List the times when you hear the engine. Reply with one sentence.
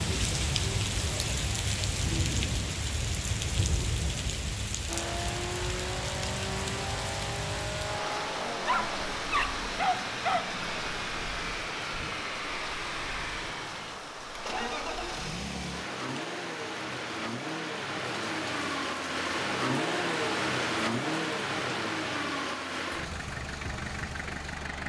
The engine can be heard from 4.8 to 24.8 s.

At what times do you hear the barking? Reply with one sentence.
The barking can be heard from 8.6 to 10.6 s.